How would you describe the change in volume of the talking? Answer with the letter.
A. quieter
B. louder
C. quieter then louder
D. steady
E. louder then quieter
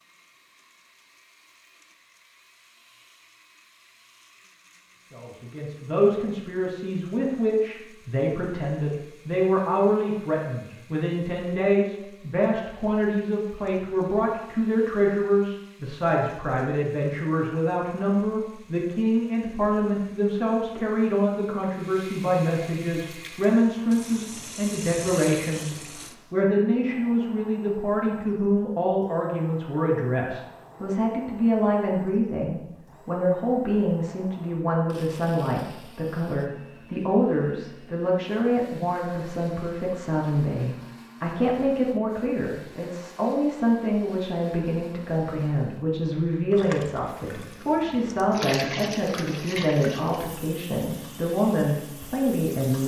D.